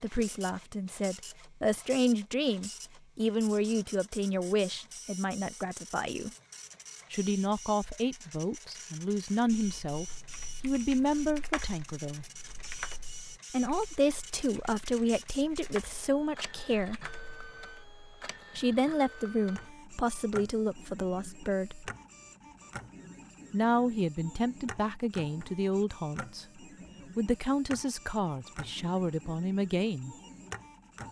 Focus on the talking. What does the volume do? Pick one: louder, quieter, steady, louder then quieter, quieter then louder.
steady.